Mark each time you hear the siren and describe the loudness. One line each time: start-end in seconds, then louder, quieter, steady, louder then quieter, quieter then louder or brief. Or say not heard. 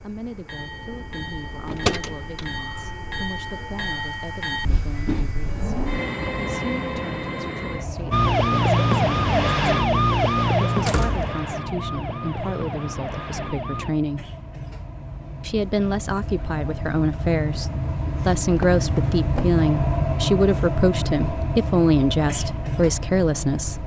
8.1-13.9 quieter.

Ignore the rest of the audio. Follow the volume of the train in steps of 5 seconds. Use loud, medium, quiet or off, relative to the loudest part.
medium, loud, medium, loud, loud.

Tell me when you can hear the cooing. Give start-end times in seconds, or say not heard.
not heard.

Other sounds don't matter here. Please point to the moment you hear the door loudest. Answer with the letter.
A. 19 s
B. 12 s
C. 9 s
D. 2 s
D.